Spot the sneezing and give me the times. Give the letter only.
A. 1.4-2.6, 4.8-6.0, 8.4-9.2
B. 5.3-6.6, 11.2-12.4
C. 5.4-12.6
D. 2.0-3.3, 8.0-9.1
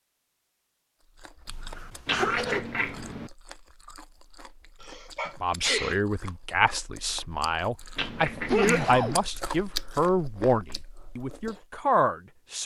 A.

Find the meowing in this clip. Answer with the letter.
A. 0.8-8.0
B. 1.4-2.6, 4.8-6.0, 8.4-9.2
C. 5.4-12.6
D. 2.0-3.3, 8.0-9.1
D.